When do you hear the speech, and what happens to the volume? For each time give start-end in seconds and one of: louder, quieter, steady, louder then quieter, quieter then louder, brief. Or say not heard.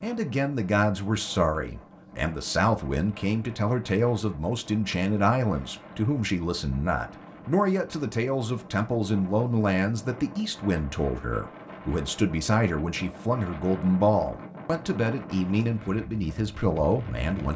0.0-17.5 steady.